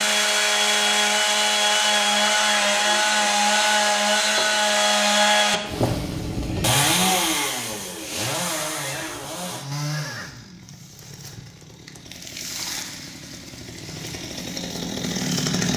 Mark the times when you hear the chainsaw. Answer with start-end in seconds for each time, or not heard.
0.0-15.7.